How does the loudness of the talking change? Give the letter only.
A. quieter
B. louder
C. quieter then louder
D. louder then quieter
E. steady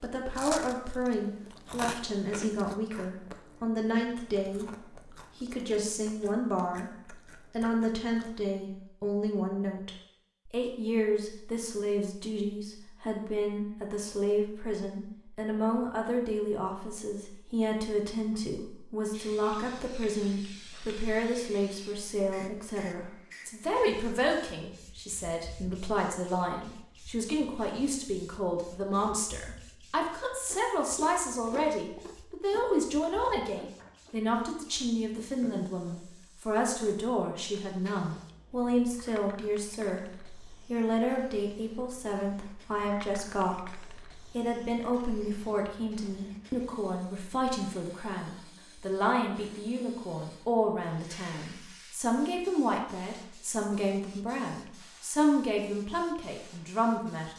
E.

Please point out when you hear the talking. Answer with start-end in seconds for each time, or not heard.
0.0-6.9, 7.5-57.3.